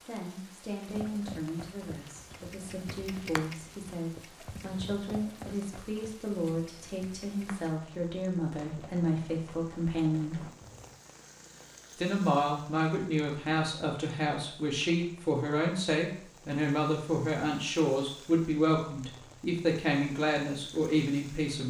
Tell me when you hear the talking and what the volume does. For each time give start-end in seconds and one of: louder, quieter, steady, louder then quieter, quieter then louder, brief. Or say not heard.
0.1-10.5 louder
11.9-21.6 steady.